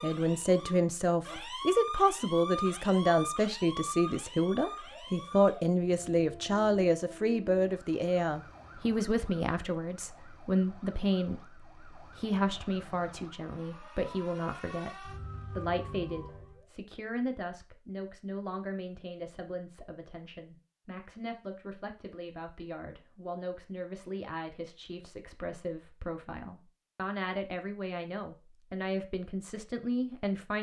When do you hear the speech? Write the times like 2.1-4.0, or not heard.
0.0-30.5.